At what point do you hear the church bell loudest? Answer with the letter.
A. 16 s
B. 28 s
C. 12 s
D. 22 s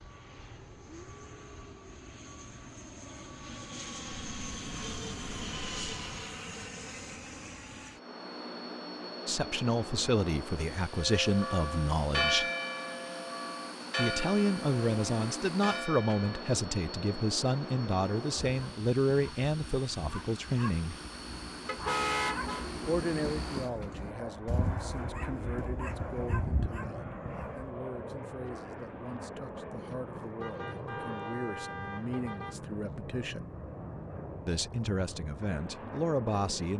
C.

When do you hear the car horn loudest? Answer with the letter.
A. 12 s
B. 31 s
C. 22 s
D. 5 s
C.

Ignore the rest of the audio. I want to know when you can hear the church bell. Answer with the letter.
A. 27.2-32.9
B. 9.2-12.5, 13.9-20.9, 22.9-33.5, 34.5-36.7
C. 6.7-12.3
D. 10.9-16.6
D.